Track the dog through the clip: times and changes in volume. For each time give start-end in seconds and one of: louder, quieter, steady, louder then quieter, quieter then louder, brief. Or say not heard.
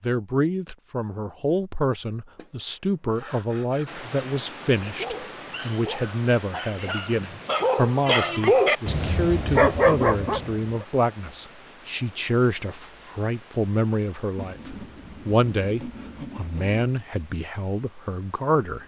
4.8-10.8 louder.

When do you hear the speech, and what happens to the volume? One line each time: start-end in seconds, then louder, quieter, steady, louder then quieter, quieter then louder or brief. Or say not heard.
0.0-18.8 steady.